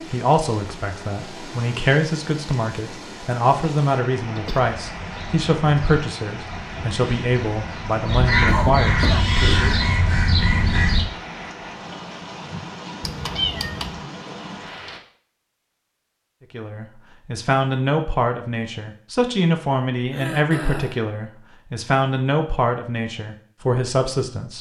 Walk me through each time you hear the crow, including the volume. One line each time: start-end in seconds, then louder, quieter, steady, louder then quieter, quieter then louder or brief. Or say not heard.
4.8-11.1 louder.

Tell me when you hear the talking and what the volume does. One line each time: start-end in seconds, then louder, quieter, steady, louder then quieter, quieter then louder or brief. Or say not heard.
0.1-9.8 steady
16.5-24.5 steady.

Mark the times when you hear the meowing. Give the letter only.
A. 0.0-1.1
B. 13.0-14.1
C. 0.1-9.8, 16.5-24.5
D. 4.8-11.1
B.